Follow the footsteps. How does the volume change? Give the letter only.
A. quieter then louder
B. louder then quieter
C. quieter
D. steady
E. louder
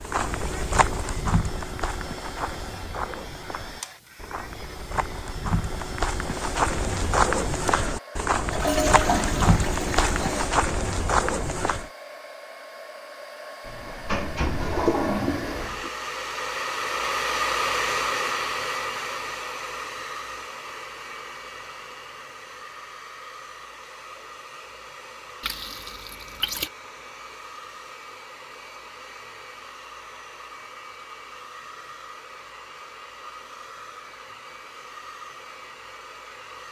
A.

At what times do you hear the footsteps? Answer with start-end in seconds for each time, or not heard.
0.0-11.8.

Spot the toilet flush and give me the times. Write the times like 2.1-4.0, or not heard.
8.5-10.5, 13.7-15.9, 25.4-26.7.